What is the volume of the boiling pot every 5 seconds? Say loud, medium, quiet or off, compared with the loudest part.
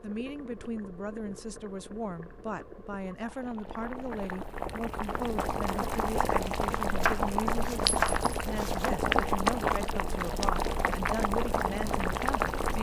quiet, loud, loud.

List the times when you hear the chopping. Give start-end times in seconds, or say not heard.
7.0-8.9.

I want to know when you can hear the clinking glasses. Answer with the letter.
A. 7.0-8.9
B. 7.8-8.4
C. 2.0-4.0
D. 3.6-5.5
B.